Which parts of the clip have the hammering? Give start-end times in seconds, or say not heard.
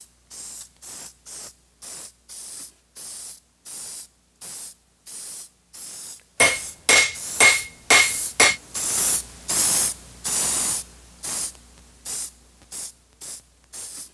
6.3-8.6.